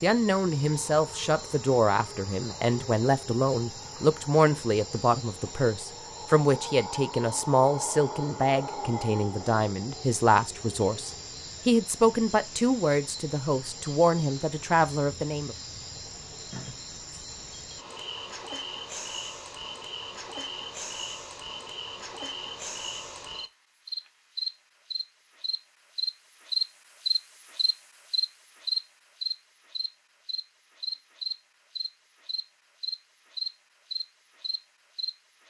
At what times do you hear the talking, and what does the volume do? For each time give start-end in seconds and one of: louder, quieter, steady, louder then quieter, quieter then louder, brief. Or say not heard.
0.0-15.6 steady.